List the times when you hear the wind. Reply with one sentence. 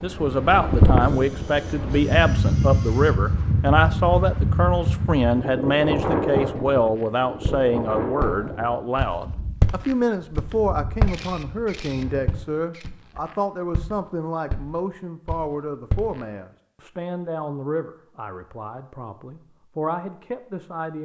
You can hear the wind from 0.0 to 12.4 s.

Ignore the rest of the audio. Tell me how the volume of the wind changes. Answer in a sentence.
The volume of the wind goes down.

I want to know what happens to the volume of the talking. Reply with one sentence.
The loudness of the talking goes down.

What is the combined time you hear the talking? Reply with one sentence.
The talking can be heard for 21 seconds in total.